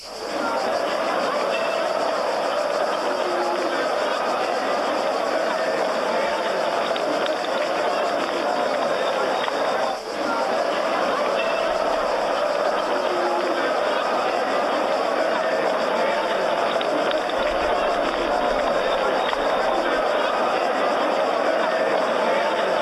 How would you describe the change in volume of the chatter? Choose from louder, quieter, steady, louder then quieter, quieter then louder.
steady.